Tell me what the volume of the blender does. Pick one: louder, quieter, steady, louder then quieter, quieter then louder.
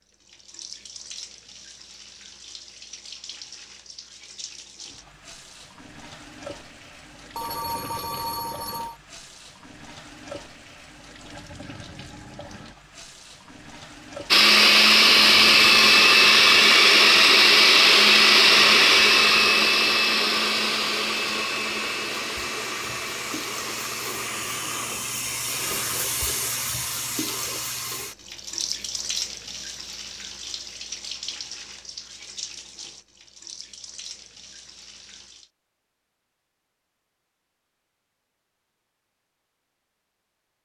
quieter.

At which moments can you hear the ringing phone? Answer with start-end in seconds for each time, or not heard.
7.3-9.0.